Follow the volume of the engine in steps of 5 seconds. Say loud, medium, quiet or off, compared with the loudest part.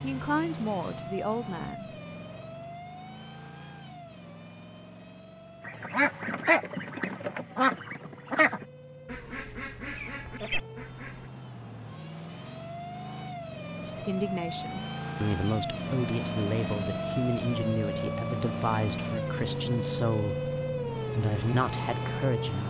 medium, quiet, medium, loud, loud.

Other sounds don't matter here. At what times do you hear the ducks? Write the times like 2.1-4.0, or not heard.
5.7-11.3.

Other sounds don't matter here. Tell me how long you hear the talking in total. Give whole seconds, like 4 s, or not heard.
11 s.